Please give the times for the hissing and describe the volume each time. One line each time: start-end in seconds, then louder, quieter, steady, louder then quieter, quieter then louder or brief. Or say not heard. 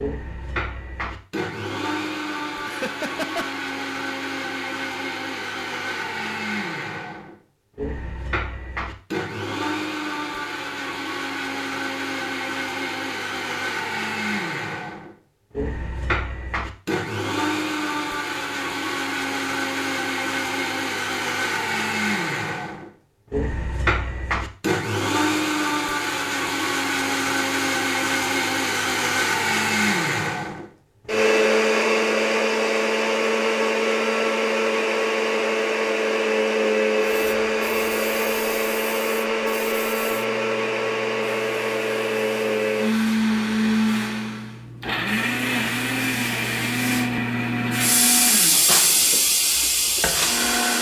37.0-50.7 louder.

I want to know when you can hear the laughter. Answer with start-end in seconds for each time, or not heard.
2.6-3.5.